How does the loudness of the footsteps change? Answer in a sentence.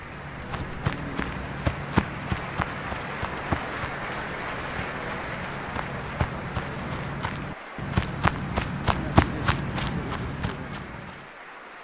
The volume of the footsteps goes down, then up.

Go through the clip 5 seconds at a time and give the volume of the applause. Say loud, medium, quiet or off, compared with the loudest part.
loud, loud, medium.